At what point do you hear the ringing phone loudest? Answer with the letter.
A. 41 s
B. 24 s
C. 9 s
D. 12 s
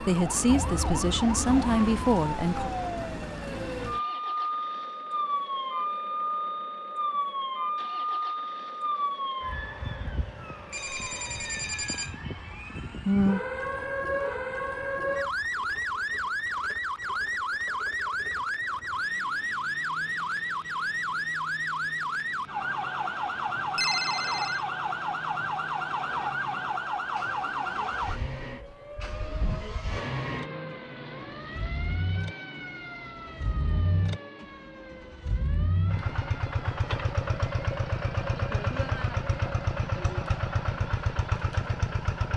B.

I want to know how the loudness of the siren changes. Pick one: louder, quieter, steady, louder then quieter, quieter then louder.
quieter.